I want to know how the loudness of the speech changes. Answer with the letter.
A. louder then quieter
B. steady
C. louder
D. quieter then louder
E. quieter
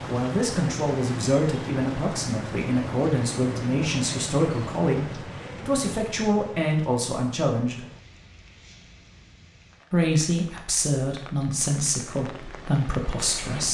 B.